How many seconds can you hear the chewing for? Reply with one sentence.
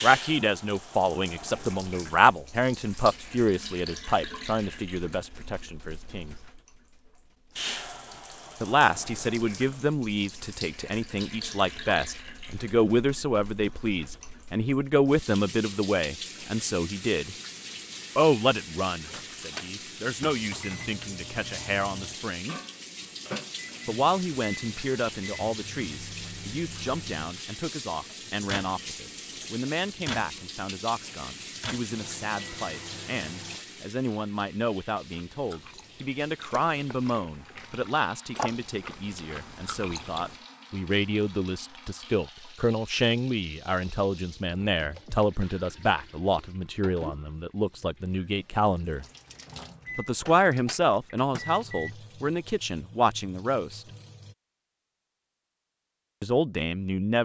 The chewing can be heard for 5 seconds in total.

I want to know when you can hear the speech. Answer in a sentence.
The speech can be heard from 0.0 to 6.3 s, from 8.6 to 17.4 s, from 18.1 to 22.6 s, from 23.9 to 49.0 s, from 50.0 to 53.8 s and from 56.2 to 57.1 s.